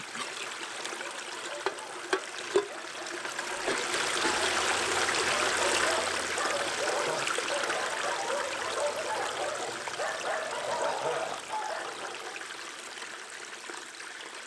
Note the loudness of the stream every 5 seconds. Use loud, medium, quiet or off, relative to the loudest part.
loud, loud, medium.